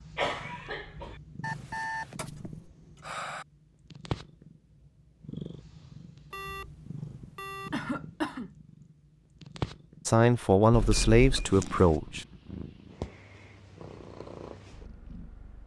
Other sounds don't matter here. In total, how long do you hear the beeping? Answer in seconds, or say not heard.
4 s.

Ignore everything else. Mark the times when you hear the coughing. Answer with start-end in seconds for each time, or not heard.
0.1-1.2, 7.7-8.5, 11.3-11.9.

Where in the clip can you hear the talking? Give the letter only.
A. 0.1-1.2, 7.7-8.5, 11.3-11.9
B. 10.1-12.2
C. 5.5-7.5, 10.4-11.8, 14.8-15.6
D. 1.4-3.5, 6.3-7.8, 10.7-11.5
B.